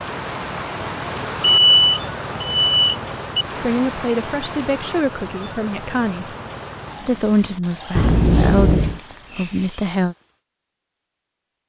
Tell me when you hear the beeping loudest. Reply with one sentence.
The loudest moment of the beeping is at 2 seconds.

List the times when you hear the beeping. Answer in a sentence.
You can hear the beeping from 1.4 to 3.5 s and from 8.0 to 9.0 s.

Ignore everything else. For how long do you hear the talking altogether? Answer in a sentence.
You can hear the talking for 6 seconds altogether.